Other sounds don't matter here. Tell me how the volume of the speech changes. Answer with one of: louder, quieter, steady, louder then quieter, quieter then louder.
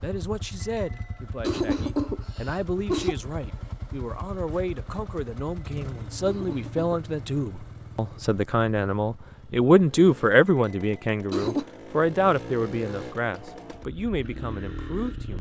louder then quieter.